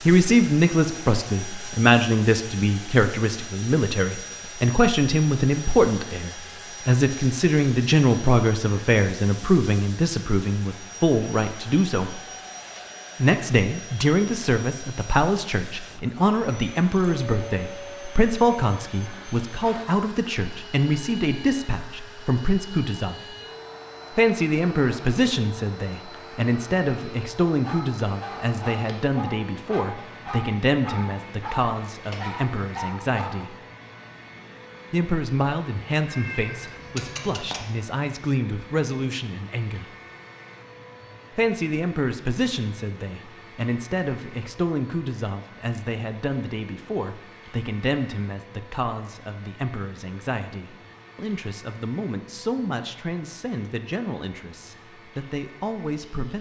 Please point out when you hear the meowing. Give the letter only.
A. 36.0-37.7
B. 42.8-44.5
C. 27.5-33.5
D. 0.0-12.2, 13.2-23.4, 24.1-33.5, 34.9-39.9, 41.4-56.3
A.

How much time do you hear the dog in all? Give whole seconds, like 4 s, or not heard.
6 s.